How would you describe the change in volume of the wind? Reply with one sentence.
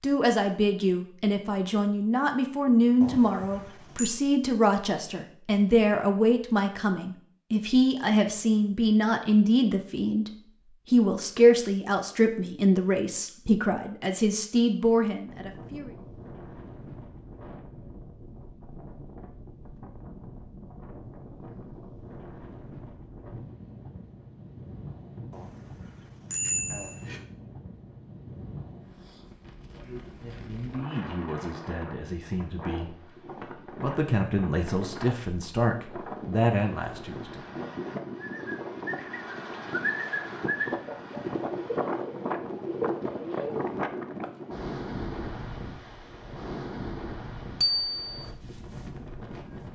The loudness of the wind goes up.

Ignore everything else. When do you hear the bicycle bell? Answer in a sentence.
The bicycle bell can be heard from 3.0 to 4.2 s, from 25.3 to 27.2 s and from 47.6 to 48.2 s.